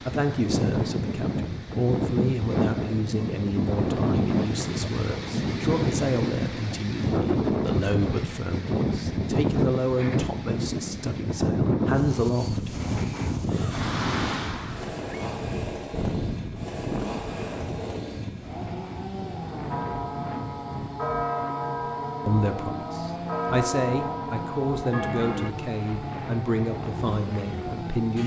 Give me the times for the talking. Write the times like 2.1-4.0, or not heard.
0.0-12.8, 22.2-28.2.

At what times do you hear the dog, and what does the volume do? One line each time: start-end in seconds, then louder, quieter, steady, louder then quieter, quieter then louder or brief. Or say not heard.
not heard.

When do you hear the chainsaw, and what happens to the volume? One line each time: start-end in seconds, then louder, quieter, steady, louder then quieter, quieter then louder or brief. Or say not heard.
13.4-28.2 steady.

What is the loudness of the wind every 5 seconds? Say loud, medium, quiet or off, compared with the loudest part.
loud, loud, loud, medium, quiet, medium.